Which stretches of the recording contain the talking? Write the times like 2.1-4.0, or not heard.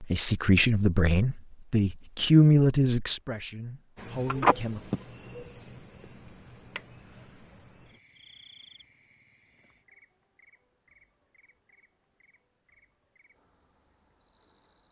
0.0-4.8.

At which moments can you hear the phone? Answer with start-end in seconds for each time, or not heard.
4.2-5.0.